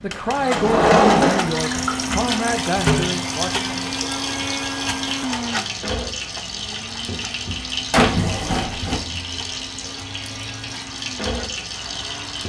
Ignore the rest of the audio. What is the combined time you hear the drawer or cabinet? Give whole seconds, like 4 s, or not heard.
2 s.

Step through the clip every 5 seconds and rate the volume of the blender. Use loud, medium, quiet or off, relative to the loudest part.
loud, medium, quiet.